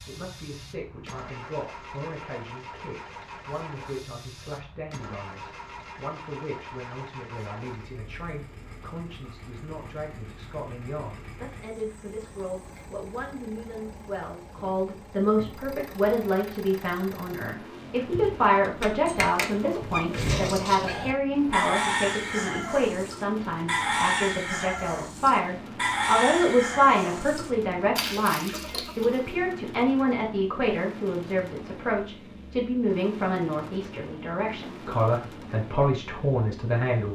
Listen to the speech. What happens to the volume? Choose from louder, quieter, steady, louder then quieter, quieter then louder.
louder.